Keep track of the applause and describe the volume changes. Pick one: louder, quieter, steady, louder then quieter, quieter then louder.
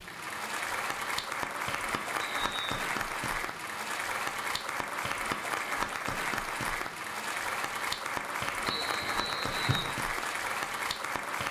steady.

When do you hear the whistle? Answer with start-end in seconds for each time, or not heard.
2.2-2.8, 8.7-9.9.